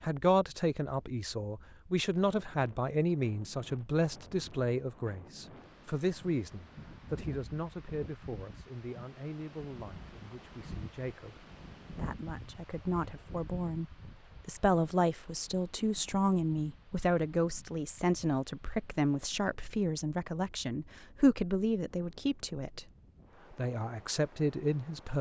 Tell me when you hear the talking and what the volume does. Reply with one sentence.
You can hear the talking from 0.0 to 22.9 s, getting quieter then louder; and briefly from 23.5 to 25.1 s.